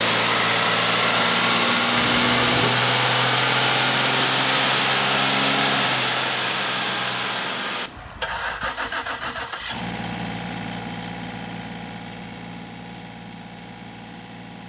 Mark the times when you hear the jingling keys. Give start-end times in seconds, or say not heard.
1.9-2.7.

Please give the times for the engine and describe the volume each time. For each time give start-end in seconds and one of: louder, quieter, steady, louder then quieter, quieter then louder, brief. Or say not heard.
0.0-14.6 quieter.